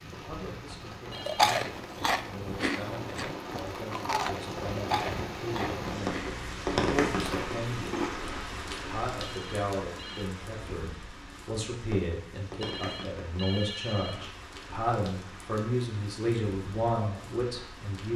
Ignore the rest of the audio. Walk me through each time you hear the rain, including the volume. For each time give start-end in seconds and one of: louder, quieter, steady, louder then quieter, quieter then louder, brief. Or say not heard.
0.0-18.1 louder then quieter.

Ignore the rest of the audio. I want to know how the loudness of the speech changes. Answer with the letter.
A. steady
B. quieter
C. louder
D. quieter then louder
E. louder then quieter
C.